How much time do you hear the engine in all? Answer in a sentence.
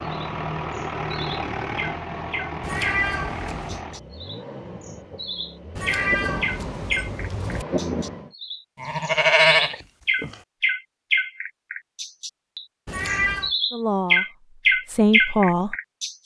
You can hear the engine for 8 seconds altogether.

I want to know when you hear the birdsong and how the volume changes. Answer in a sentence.
You can hear the birdsong from 0.0 to 16.1 s, getting louder.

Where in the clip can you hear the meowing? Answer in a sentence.
You can hear the meowing from 2.6 to 3.8 s, from 5.8 to 7.7 s and from 12.8 to 13.5 s.